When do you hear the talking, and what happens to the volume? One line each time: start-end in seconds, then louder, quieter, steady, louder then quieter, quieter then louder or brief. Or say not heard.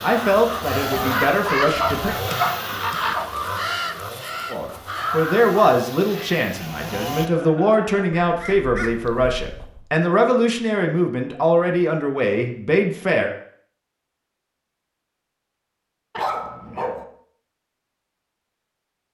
0.0-2.1 brief
4.5-13.3 steady.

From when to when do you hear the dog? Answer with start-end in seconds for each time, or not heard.
1.8-3.2, 16.1-17.1.